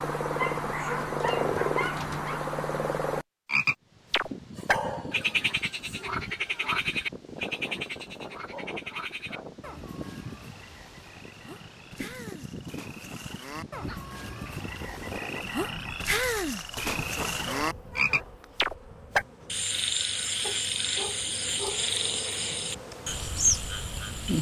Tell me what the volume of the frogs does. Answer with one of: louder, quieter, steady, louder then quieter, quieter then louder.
quieter then louder.